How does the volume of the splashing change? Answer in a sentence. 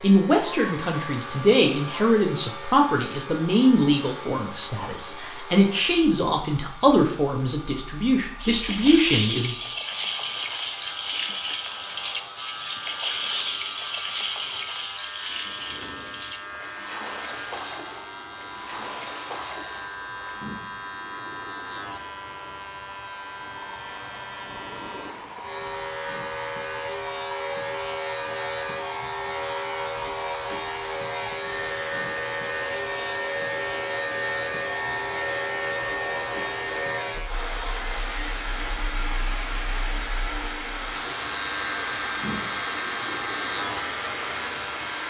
The volume of the splashing goes down.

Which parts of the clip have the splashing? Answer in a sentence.
You can hear the splashing from 8.4 to 20.4 s.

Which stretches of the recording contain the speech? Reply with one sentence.
The speech can be heard from 0.0 to 9.6 s.